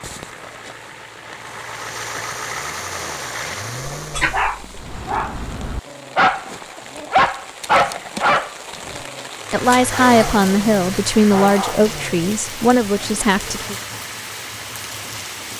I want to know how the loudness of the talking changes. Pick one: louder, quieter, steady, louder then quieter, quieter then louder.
quieter then louder.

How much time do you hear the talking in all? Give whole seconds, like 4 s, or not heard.
4 s.